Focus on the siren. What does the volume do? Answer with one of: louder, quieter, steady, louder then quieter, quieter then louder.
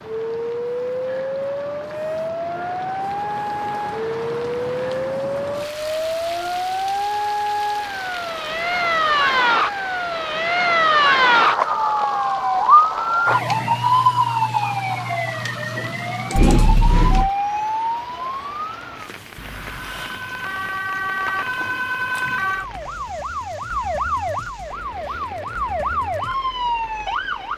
louder then quieter.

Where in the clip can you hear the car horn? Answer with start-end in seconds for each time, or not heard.
16.4-17.3.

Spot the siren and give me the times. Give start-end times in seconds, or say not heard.
0.0-27.5.